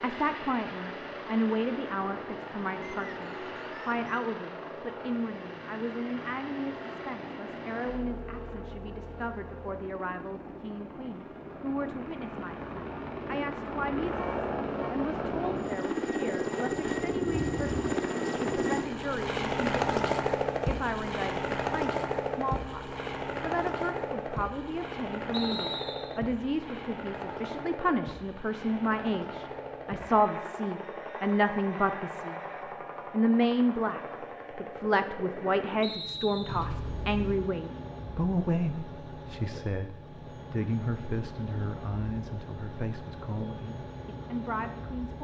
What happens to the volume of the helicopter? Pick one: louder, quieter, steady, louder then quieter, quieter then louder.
louder then quieter.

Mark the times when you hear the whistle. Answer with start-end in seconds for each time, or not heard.
2.8-4.1, 25.3-26.2, 35.8-36.7.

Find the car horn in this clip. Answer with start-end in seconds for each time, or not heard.
14.1-14.9, 36.5-37.4.